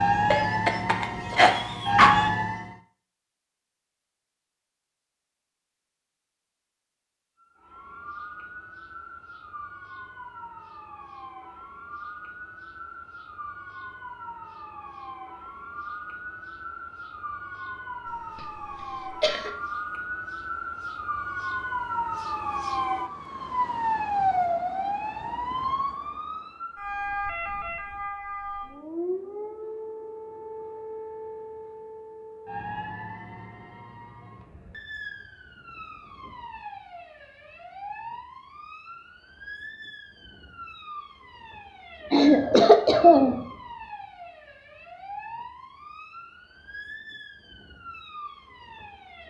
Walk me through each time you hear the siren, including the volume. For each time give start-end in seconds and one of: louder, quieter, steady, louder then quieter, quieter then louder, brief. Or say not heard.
0.0-2.8 brief
7.4-49.2 louder then quieter.